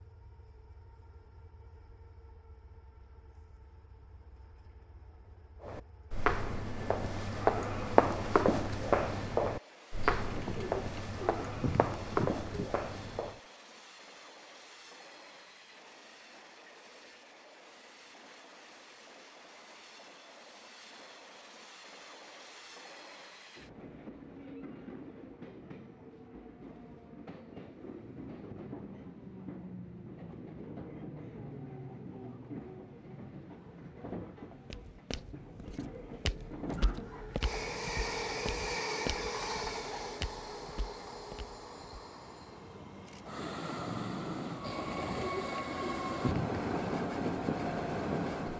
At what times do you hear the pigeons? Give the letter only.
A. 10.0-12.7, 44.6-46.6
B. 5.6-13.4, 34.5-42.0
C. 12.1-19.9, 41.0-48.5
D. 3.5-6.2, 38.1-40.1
A.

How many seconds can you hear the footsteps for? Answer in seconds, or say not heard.
15 s.